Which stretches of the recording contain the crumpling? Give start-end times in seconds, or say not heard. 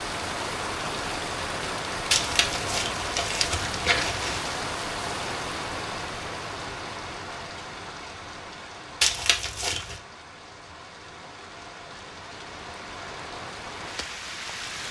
2.1-4.5, 9.0-10.0.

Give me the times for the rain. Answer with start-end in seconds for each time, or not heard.
0.0-14.8.